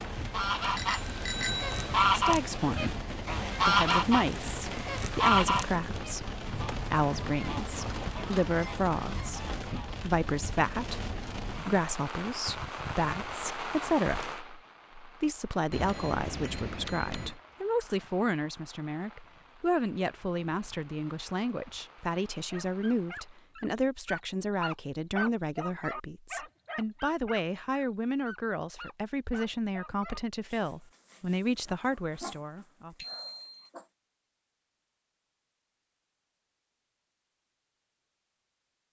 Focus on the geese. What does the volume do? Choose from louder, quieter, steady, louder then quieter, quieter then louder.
quieter.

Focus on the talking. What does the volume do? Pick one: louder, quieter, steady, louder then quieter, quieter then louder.
steady.